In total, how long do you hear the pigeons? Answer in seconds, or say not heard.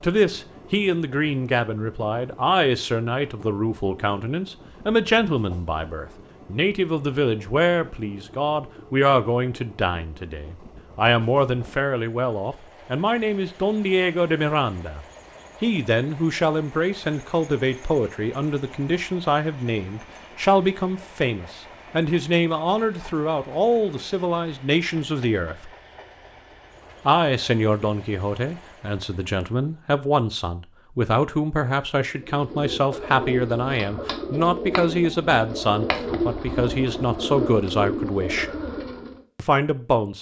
7 s.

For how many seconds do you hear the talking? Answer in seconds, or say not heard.
37 s.